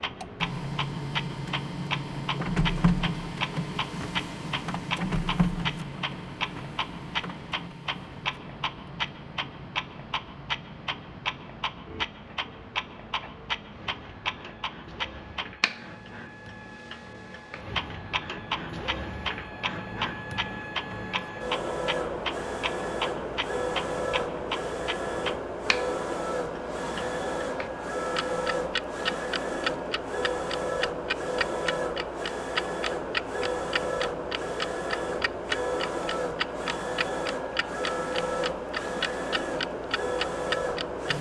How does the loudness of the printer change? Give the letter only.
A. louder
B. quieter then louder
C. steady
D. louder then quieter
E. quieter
B.